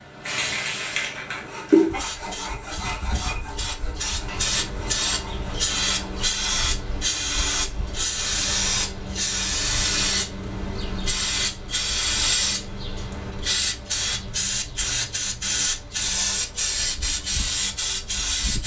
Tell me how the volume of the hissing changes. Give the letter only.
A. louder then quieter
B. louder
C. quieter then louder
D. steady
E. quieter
D.